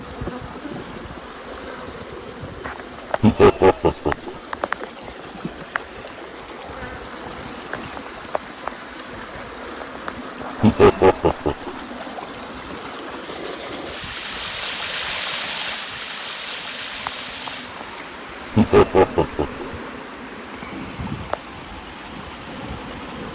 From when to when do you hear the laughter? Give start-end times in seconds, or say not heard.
3.2-4.3, 10.6-11.7, 18.6-19.6.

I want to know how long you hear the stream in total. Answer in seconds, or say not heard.
23 s.